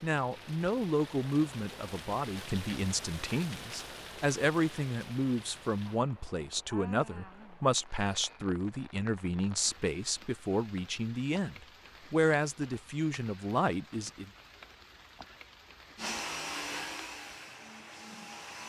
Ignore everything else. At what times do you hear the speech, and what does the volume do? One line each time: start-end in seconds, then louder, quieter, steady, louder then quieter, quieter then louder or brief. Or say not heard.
0.0-14.3 steady.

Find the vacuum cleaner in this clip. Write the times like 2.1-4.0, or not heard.
15.9-18.6.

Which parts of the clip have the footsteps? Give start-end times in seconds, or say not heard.
not heard.